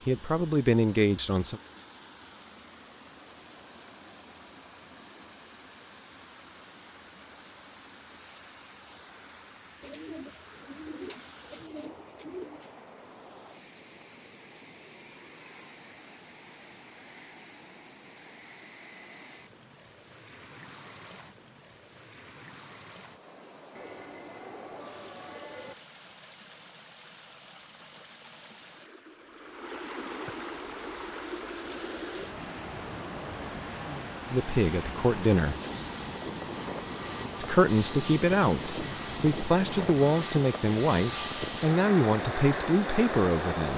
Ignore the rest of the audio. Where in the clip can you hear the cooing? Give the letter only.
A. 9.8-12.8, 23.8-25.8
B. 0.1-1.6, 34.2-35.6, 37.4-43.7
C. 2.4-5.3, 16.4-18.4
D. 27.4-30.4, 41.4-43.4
A.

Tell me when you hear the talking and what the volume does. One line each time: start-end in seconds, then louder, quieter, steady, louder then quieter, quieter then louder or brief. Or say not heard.
0.1-1.6 brief
34.2-35.6 brief
37.4-43.7 steady.